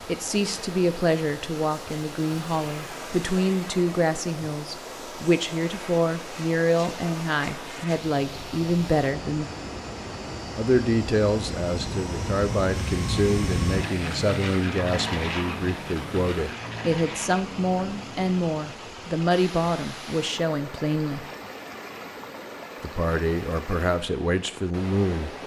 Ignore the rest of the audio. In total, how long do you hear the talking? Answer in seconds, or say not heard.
23 s.